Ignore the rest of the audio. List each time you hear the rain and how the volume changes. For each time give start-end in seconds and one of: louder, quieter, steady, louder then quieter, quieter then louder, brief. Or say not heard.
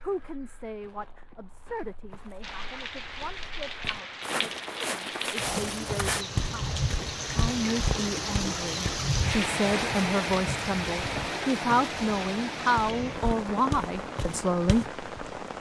2.4-15.5 louder then quieter.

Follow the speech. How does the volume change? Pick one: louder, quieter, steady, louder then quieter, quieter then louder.
louder.